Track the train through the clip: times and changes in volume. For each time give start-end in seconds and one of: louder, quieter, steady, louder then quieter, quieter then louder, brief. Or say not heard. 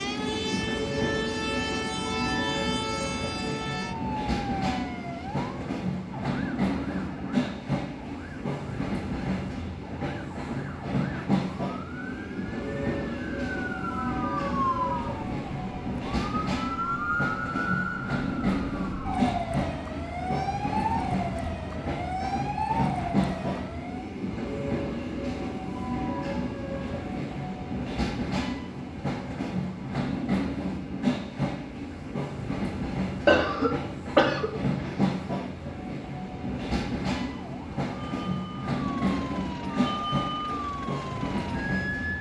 0.0-42.1 steady.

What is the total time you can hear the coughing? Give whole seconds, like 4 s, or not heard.
2 s.